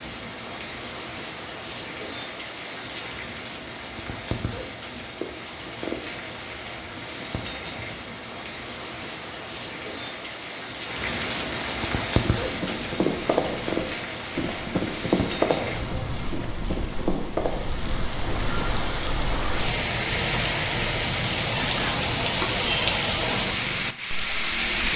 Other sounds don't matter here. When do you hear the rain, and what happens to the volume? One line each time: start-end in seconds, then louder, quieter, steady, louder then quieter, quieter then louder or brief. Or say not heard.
0.0-24.9 louder.